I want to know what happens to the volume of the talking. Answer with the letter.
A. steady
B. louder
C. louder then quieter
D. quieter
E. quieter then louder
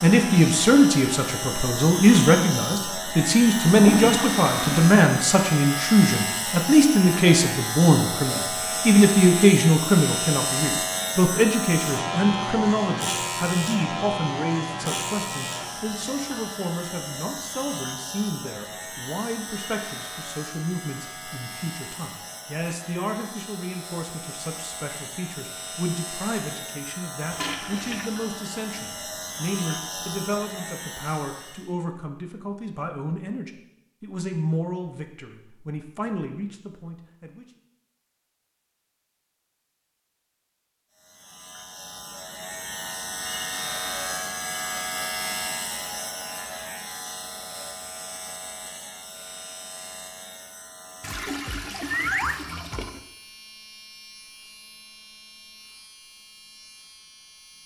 D.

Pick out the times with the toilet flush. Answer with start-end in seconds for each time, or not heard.
3.8-5.0, 27.3-28.1, 51.0-53.0.